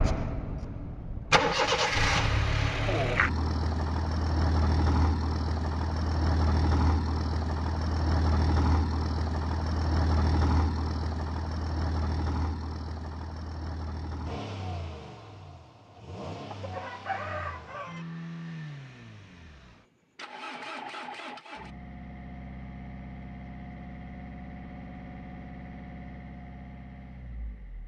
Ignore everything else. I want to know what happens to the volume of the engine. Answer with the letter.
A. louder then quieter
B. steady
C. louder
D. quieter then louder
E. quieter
E.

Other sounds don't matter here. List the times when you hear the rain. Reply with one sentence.
The rain can't be heard in this clip.